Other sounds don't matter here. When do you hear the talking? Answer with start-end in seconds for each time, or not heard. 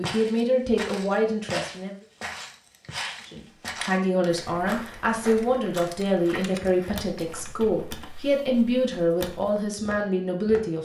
0.0-1.9, 3.2-10.7.